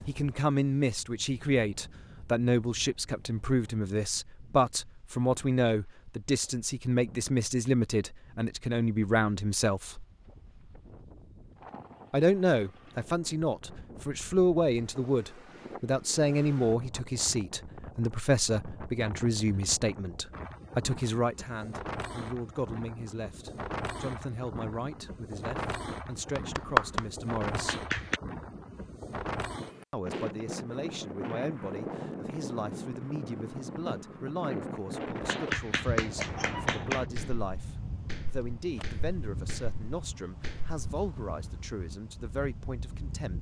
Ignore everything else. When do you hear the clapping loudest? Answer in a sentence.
The volume of the clapping peaks at 27 seconds.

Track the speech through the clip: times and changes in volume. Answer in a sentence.
The speech can be heard from 0.1 to 10.1 s, at a steady volume; from 12.1 to 27.9 s, getting quieter; and from 29.9 to 43.3 s, at a steady volume.